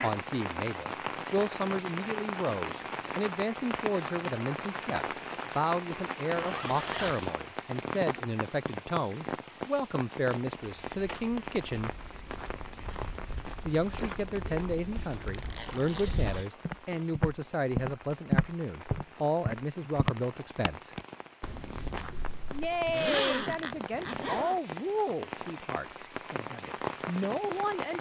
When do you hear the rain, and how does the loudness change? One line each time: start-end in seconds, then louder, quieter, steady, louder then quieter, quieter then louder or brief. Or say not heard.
0.0-27.9 quieter then louder.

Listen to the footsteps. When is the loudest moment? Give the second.
18 s.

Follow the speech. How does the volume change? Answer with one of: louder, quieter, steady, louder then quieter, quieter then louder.
steady.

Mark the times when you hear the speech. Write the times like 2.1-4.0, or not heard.
0.0-11.9, 13.7-20.9, 22.5-27.9.